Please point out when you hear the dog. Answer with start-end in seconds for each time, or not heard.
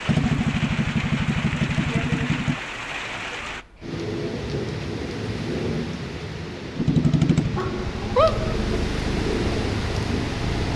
7.0-8.6.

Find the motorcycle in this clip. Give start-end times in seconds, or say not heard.
0.0-2.5, 6.8-10.7.